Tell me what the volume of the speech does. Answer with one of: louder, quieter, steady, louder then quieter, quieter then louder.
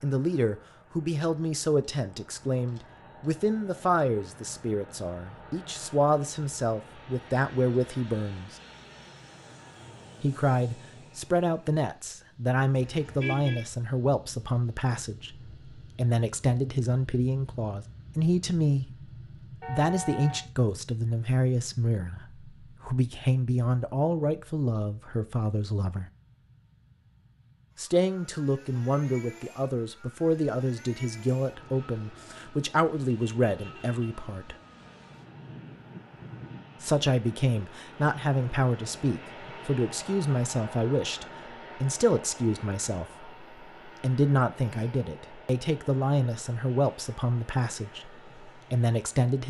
steady.